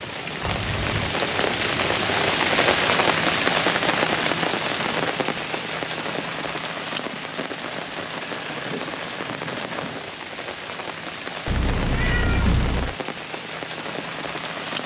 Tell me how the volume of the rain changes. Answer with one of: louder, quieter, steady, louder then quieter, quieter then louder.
quieter.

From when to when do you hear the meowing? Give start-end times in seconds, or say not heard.
0.4-1.1, 11.4-12.9.